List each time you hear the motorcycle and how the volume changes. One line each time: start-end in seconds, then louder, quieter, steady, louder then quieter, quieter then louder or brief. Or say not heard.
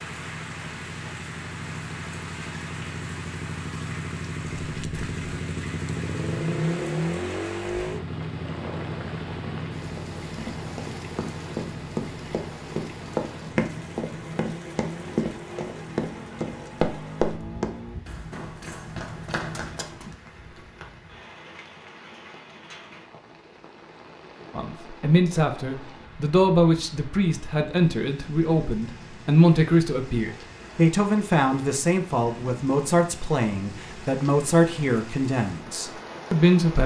0.0-18.0 louder then quieter.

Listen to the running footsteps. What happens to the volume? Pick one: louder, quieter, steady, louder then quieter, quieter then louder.
louder then quieter.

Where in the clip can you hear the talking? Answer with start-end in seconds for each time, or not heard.
24.6-36.8.